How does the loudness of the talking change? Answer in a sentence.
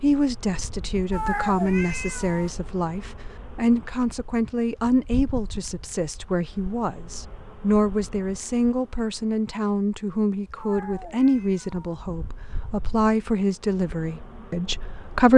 The volume of the talking stays about the same.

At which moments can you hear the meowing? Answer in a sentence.
The meowing can be heard from 1.1 to 2.5 s and from 10.6 to 11.8 s.